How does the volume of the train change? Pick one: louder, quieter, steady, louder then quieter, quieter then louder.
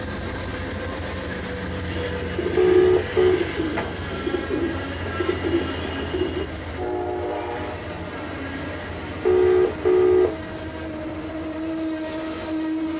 steady.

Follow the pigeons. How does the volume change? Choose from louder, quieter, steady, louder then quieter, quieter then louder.
steady.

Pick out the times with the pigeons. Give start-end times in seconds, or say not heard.
1.9-6.5.